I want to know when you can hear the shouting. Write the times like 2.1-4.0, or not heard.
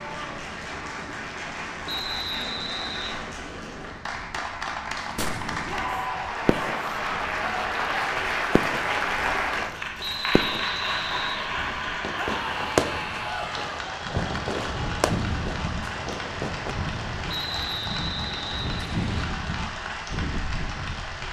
5.6-6.8, 12.2-13.8.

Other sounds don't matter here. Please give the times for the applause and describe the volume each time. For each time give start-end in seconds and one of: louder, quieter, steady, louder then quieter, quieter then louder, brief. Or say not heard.
0.0-21.2 louder then quieter.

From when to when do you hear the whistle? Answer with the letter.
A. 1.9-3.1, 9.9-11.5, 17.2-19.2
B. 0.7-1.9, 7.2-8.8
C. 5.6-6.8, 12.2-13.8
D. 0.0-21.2
A.